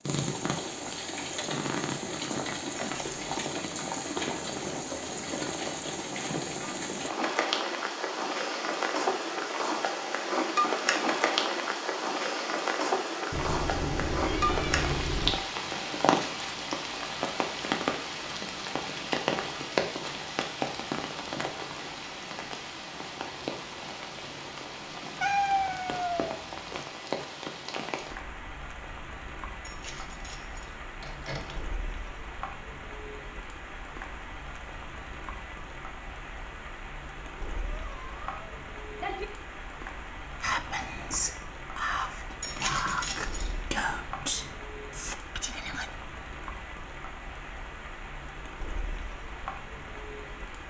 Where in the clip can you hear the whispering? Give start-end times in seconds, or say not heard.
40.4-45.9.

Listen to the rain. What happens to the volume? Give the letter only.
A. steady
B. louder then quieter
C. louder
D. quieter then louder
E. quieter
E.